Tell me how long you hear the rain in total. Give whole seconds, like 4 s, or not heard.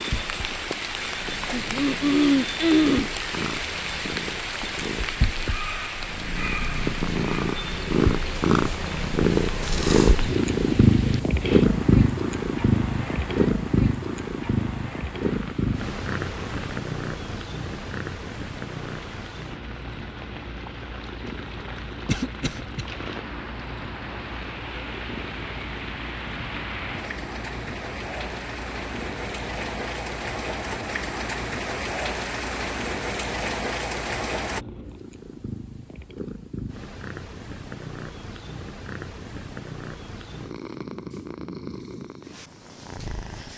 35 s.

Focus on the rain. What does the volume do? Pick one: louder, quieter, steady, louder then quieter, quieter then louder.
quieter then louder.